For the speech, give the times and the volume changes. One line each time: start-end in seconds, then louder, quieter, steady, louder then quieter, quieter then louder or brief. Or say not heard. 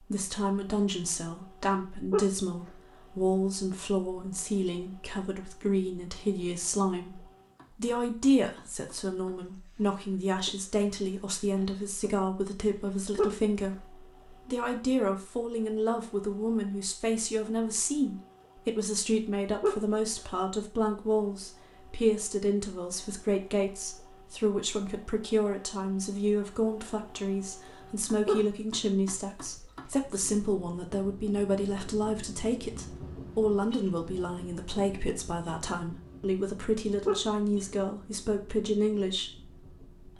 0.0-40.1 steady.